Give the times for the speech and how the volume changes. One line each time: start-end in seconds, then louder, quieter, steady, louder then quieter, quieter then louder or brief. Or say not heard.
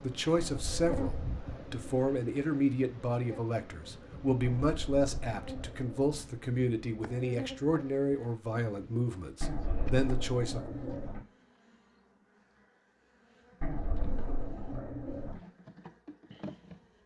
0.0-10.9 steady.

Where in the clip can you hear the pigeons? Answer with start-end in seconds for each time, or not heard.
0.3-2.0, 4.4-6.2, 9.4-11.2, 13.6-15.4.